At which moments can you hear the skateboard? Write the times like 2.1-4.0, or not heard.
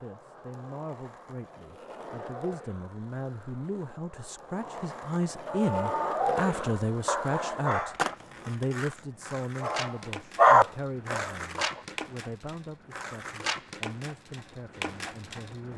0.0-15.7.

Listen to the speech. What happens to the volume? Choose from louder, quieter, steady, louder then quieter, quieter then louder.
louder then quieter.